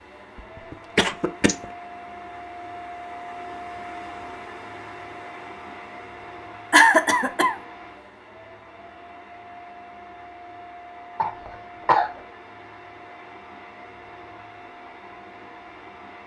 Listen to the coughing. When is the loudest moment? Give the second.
7 s.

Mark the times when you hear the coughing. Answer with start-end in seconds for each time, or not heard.
0.7-1.6, 6.7-7.5, 11.2-12.2.